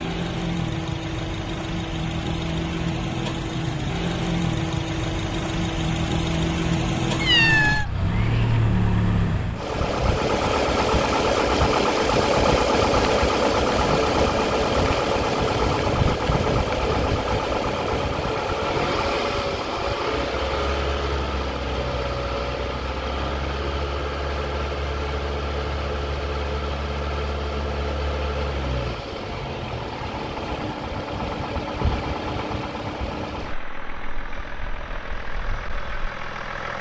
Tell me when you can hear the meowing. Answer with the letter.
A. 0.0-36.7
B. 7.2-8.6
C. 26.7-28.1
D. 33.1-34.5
B.